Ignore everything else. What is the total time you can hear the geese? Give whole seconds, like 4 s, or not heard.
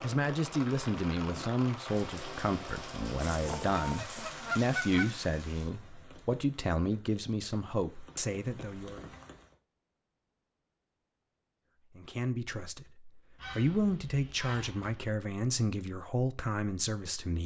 4 s.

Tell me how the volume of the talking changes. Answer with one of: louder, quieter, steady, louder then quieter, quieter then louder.
steady.